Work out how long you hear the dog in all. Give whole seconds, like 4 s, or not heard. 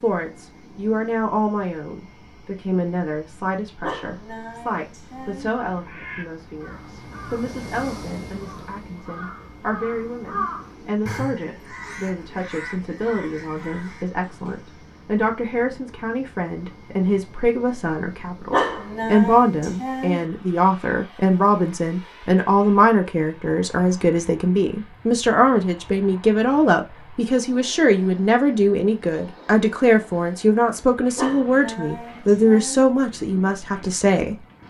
5 s.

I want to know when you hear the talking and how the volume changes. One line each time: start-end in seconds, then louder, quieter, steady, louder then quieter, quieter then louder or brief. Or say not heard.
0.0-34.4 louder.